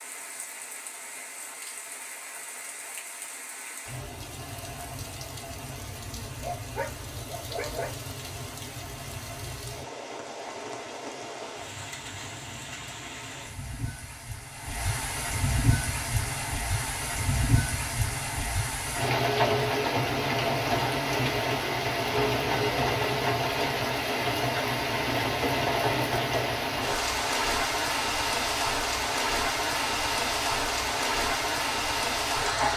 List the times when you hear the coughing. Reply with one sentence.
The coughing can't be heard in this clip.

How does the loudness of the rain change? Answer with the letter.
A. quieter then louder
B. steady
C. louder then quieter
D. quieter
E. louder
E.